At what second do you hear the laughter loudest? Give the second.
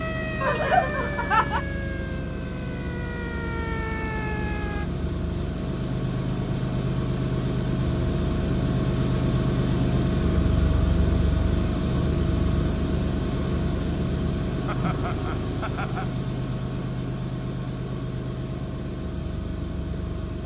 1 s.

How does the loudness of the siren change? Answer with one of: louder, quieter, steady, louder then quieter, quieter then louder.
quieter then louder.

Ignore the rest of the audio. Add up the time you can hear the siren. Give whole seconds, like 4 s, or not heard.
5 s.